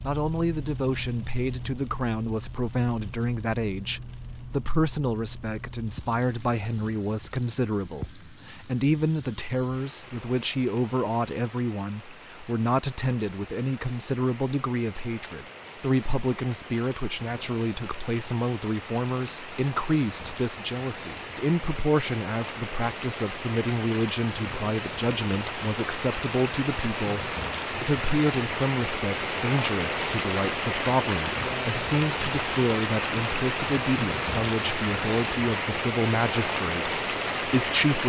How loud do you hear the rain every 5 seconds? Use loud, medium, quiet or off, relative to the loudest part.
quiet, quiet, quiet, quiet, medium, loud, loud, loud.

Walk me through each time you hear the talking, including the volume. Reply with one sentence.
You can hear the talking from 0.0 to 38.0 s, at a steady volume.